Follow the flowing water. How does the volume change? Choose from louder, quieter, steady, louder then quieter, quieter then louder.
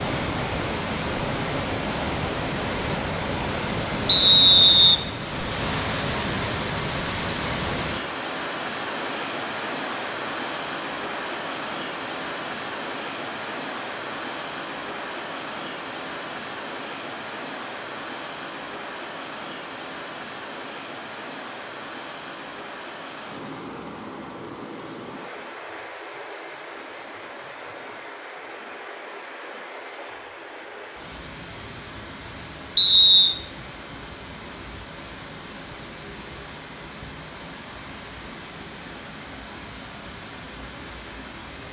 quieter.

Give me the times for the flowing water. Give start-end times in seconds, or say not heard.
0.0-41.6.